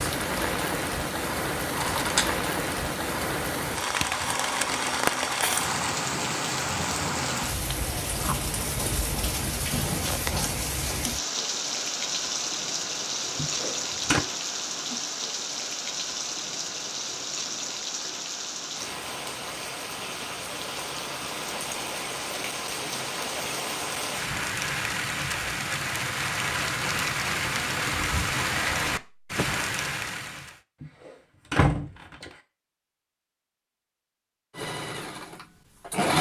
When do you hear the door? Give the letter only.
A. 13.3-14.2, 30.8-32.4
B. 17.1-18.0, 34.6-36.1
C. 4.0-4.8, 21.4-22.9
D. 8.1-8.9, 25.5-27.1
A.